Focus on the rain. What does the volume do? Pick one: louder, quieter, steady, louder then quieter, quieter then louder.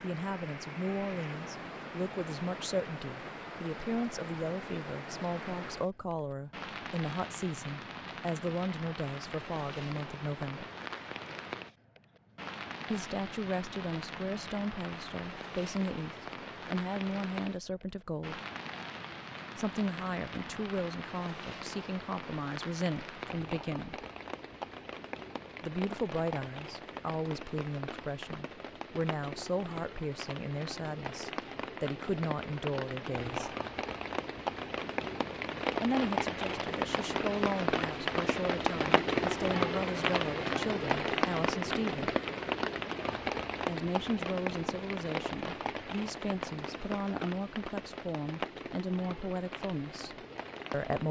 louder.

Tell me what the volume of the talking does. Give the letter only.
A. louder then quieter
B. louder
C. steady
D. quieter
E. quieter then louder
C.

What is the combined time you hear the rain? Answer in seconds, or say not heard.
51 s.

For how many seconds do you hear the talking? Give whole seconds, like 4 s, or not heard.
42 s.